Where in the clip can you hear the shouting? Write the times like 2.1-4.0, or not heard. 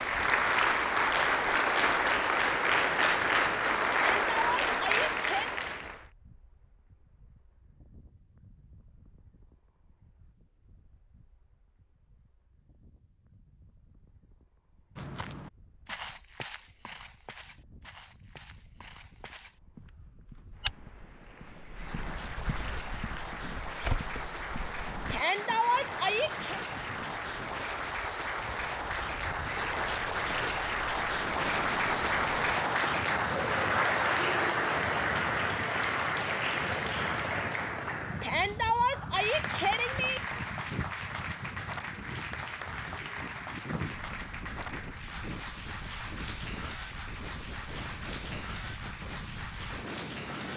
3.9-5.5, 25.1-26.6, 38.2-40.2.